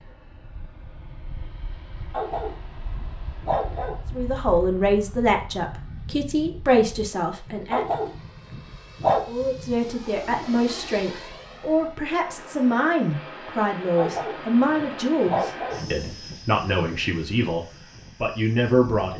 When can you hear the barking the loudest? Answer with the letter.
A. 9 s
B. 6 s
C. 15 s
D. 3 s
A.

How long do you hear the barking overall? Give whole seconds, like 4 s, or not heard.
5 s.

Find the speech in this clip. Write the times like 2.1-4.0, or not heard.
4.1-7.8, 9.2-19.1.